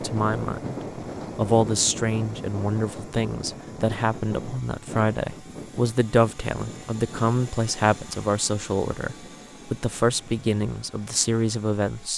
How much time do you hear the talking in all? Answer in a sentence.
The talking can be heard for 12 seconds in total.